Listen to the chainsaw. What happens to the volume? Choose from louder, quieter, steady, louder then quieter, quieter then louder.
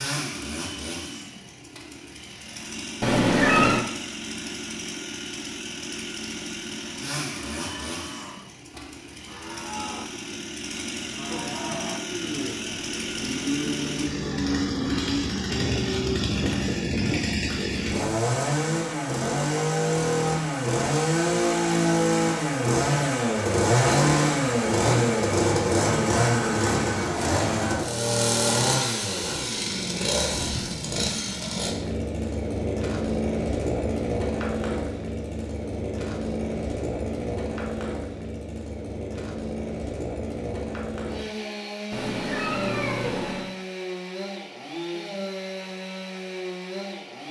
louder then quieter.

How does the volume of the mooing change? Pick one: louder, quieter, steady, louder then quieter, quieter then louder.
louder.